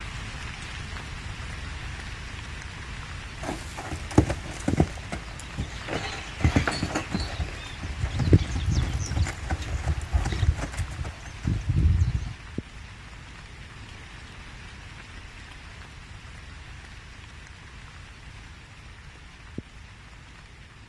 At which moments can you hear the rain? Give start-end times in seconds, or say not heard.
0.0-20.8.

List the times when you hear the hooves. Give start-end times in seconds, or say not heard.
3.4-12.3.